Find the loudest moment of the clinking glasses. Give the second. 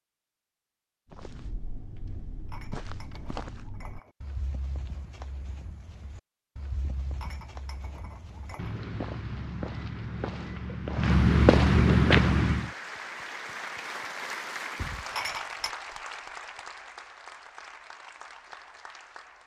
15 s.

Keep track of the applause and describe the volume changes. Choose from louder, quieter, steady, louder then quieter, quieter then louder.
quieter.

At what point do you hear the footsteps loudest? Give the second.
12 s.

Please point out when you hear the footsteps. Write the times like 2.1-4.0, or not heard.
1.1-12.7.